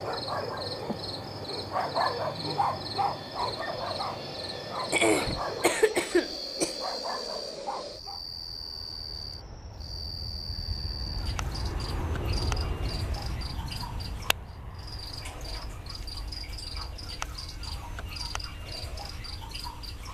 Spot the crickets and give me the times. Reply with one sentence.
You can hear the crickets from 0.0 to 20.1 s.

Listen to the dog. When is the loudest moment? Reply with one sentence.
The loudest moment of the dog is at 2 seconds.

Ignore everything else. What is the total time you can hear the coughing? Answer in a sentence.
You can hear the coughing for 2 seconds altogether.